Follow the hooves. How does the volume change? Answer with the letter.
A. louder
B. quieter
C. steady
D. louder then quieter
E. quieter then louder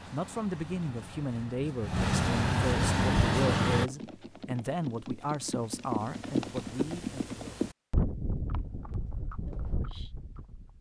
D.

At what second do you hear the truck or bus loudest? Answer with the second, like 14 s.
3 s.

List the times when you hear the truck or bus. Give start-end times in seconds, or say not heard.
0.0-3.9.